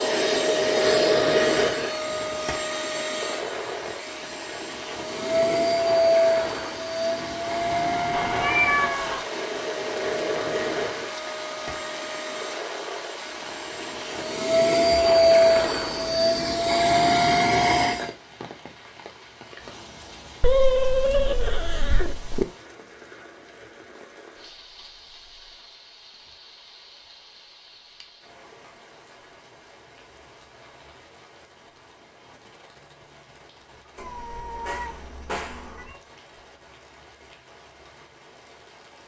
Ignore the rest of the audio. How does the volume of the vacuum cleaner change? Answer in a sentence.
The volume of the vacuum cleaner goes down, then up.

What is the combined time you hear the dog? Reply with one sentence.
You can't hear the dog here.